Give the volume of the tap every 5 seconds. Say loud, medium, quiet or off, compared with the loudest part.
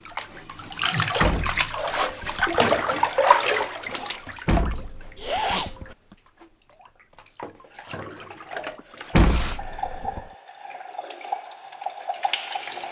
loud, quiet, medium.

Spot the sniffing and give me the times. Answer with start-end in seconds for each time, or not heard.
0.9-1.4, 5.2-5.7, 8.8-9.6.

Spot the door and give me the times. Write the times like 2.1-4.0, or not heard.
1.2-2.6, 4.5-6.0, 9.1-10.2.